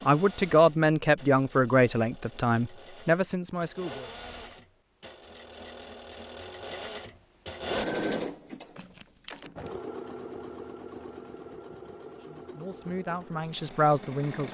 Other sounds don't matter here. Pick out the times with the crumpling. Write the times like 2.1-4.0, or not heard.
8.8-9.5.